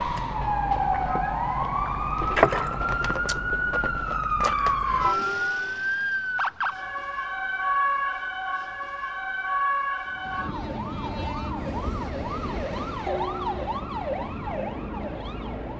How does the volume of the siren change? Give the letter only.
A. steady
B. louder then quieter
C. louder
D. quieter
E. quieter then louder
D.